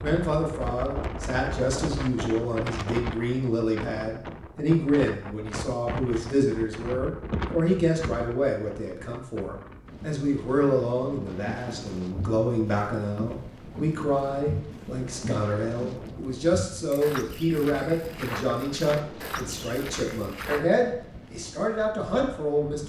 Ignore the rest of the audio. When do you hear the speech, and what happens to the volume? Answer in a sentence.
You can hear the speech from 0.0 to 22.8 s, at a steady volume.